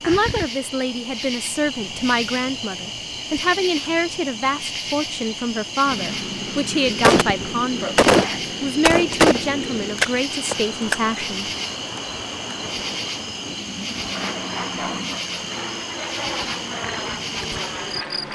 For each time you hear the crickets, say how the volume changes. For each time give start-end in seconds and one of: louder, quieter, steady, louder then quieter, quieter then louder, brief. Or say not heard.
0.0-18.3 steady.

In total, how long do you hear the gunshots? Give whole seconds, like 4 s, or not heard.
4 s.